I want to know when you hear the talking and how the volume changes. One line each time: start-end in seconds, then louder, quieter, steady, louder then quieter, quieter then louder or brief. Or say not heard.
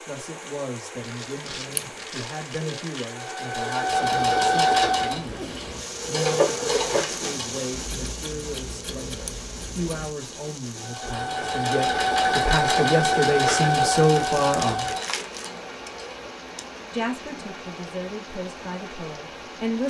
0.1-14.9 louder
16.9-19.8 brief.